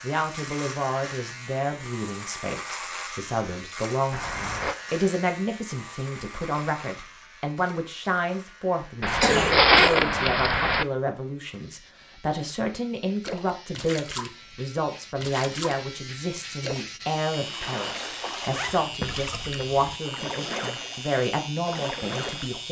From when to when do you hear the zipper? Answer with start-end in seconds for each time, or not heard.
4.1-4.8, 9.0-10.8, 18.5-19.9.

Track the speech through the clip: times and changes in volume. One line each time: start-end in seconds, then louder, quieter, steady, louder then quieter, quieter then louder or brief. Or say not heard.
0.0-22.6 steady.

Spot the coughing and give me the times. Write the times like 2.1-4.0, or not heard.
9.2-10.3.